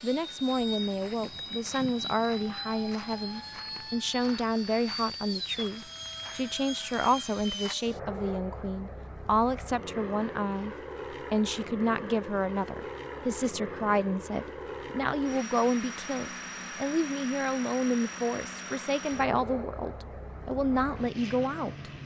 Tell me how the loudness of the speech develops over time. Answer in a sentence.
The loudness of the speech stays about the same.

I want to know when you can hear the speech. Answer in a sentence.
The speech can be heard from 0.0 to 21.9 s.